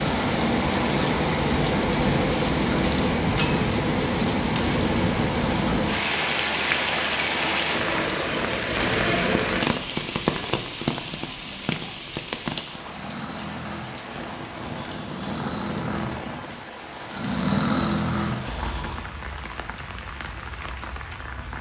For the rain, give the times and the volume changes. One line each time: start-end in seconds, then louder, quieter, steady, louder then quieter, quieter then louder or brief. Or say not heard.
0.0-21.5 quieter.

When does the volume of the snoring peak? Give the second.
18 s.